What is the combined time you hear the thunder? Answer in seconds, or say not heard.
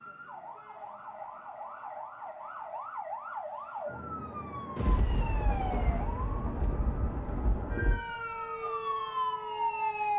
3 s.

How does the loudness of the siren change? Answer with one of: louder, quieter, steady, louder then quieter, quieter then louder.
louder.